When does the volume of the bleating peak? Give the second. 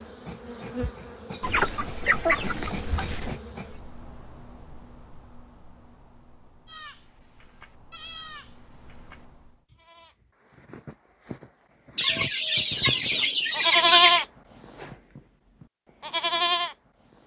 14 s.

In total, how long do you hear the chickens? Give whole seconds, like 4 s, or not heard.
4 s.